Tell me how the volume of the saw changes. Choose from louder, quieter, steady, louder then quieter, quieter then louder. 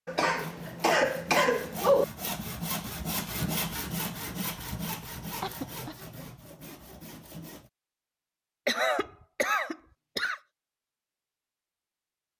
louder then quieter.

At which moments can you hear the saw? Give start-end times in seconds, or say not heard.
0.2-7.7.